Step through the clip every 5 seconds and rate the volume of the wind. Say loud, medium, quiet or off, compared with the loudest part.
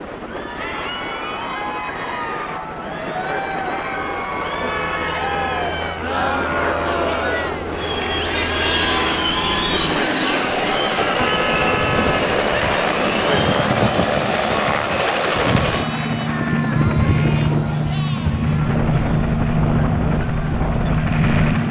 medium, loud, loud, loud, loud.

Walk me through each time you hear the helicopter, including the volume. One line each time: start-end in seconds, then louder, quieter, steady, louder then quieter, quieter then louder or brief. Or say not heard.
0.0-21.6 louder.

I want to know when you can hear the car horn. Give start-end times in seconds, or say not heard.
4.5-5.6, 11.2-12.2.